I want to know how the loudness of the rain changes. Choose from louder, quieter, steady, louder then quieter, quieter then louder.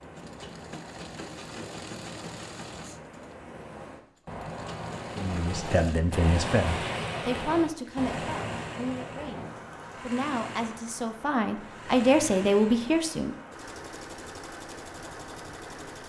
louder then quieter.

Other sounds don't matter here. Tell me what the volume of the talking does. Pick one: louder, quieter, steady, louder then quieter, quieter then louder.
quieter then louder.